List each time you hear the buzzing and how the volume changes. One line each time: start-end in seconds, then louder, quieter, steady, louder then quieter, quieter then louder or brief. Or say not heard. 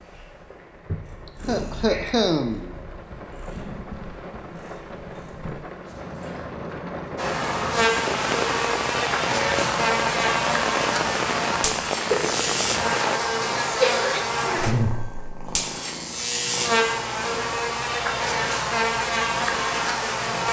7.2-20.4 steady.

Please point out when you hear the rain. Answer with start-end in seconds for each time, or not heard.
0.0-13.2.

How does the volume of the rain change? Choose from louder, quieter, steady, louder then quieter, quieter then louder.
louder.